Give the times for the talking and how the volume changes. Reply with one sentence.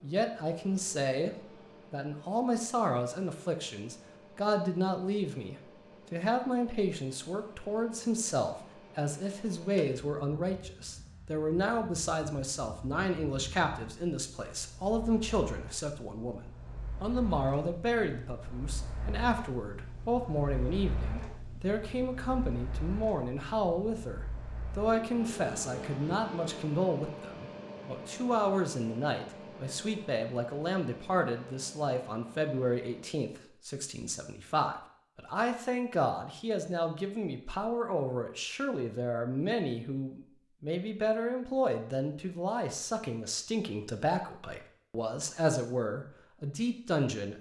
You can hear the talking from 0.0 to 47.3 s, at a steady volume.